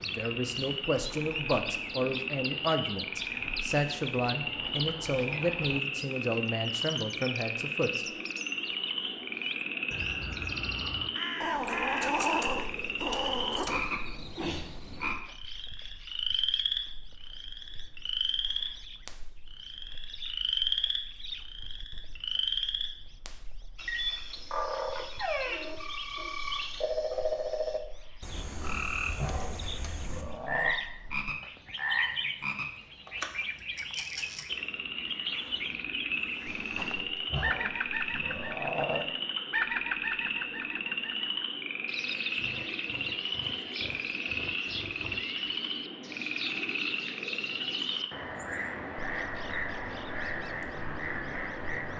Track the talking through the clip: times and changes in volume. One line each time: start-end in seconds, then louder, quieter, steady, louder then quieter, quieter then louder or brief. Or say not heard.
0.0-8.1 steady.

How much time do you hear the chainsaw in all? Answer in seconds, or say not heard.
not heard.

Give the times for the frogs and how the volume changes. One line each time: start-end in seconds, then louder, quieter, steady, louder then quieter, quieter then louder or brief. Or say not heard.
0.0-51.9 steady.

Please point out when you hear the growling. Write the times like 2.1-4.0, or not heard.
11.4-13.8, 28.3-30.8, 36.5-39.1.